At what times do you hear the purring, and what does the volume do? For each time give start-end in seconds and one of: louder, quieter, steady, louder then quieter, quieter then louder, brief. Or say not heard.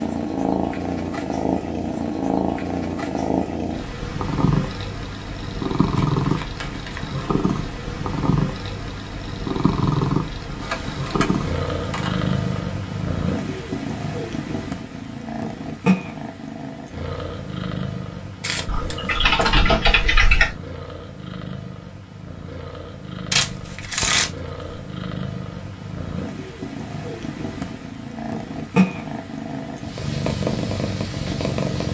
0.0-31.8 quieter then louder.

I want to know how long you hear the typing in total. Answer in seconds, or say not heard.
4 s.